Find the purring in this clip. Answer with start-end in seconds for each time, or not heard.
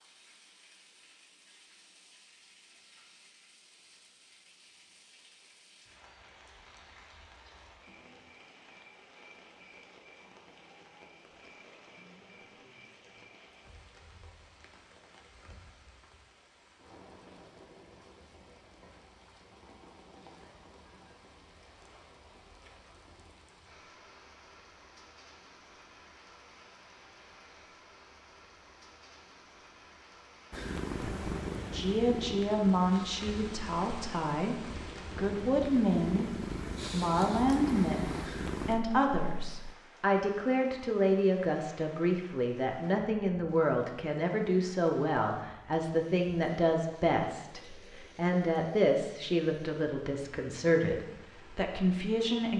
30.5-39.8.